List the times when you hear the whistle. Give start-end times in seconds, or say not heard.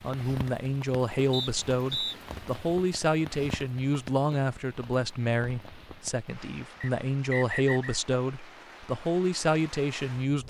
1.3-2.1, 6.8-8.0.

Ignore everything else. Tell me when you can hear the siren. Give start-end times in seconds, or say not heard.
not heard.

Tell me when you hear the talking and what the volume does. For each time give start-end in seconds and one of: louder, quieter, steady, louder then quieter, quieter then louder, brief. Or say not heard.
0.0-10.4 steady.